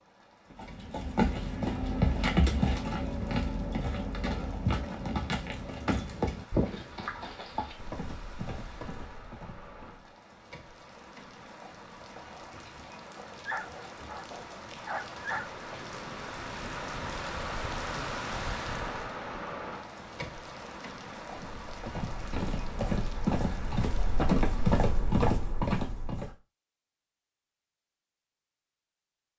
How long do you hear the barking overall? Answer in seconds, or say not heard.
2 s.